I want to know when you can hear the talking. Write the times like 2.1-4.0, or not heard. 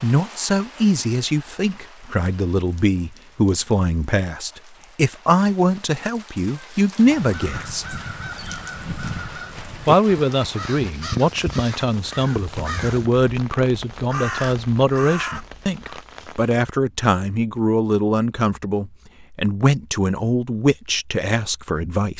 0.0-7.8, 9.8-22.1.